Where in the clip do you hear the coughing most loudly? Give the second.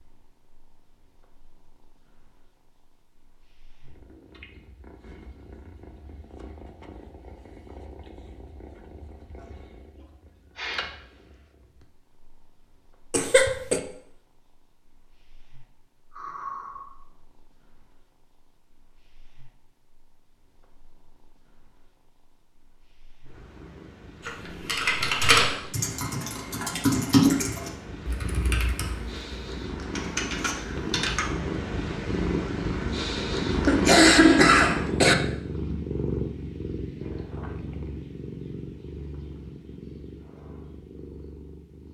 34 s.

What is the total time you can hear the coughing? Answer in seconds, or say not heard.
2 s.